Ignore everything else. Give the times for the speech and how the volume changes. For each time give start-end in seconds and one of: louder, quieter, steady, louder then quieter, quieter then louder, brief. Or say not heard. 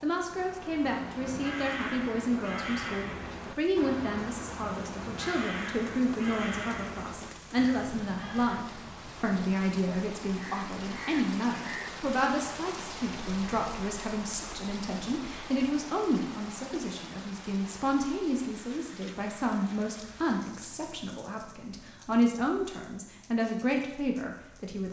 0.0-24.8 steady.